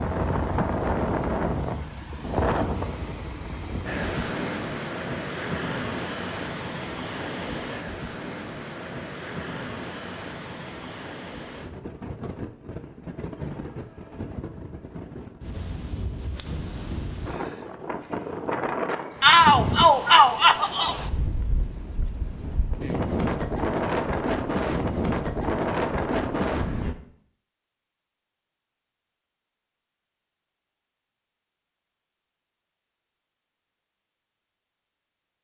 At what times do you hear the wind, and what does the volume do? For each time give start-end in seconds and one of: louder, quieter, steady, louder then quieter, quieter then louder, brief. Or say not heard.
0.0-26.9 quieter then louder.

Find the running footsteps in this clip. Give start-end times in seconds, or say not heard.
not heard.